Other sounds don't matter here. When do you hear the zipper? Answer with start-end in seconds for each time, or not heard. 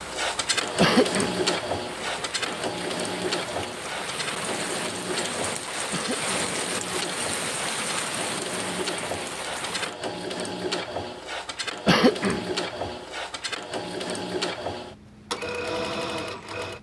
not heard.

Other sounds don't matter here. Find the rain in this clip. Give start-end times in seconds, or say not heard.
0.0-9.9.